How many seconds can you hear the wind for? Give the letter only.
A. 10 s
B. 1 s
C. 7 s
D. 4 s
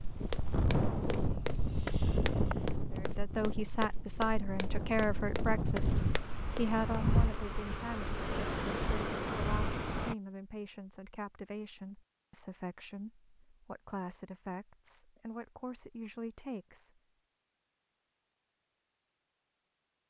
A.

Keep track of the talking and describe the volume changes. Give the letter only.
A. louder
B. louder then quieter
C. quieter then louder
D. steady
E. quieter
E.